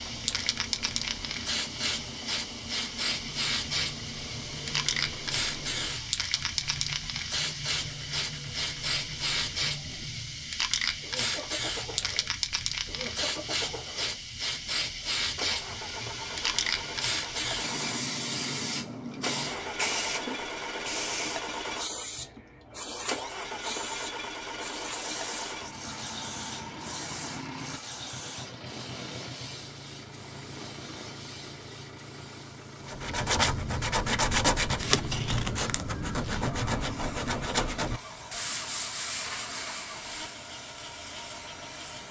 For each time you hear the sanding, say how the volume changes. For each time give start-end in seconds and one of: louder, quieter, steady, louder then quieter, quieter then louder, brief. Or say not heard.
3.2-10.5 steady
32.9-40.5 quieter.